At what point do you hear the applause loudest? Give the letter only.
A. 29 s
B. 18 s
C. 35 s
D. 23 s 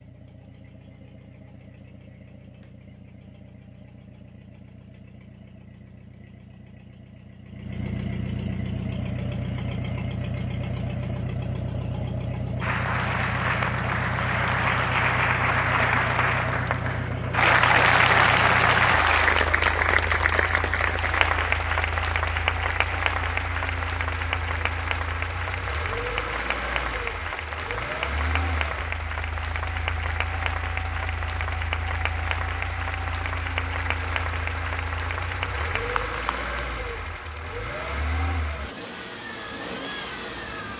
B.